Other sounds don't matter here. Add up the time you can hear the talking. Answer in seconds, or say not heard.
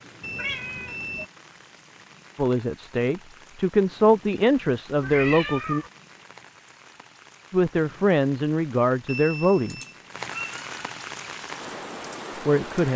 6 s.